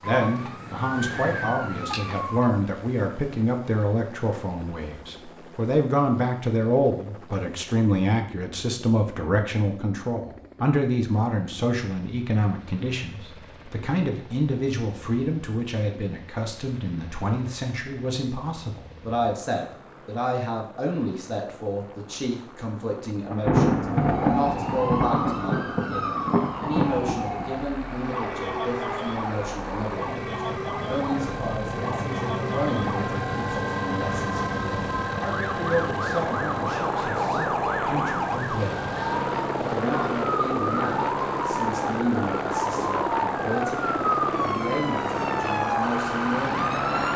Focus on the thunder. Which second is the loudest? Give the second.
24 s.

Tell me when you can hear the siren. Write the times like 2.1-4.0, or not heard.
0.0-2.6, 23.9-47.1.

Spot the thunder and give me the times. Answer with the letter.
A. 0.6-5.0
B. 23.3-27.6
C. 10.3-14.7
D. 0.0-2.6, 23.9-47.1
B.